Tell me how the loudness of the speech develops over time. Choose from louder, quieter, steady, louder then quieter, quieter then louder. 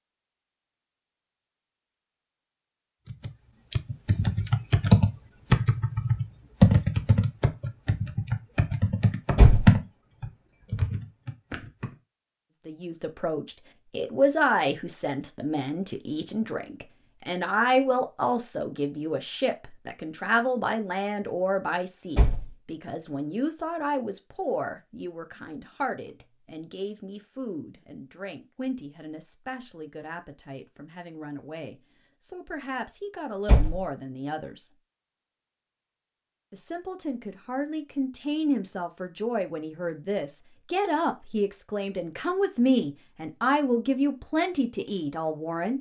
quieter then louder.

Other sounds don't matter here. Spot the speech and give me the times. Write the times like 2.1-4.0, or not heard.
12.7-34.7, 36.5-45.7.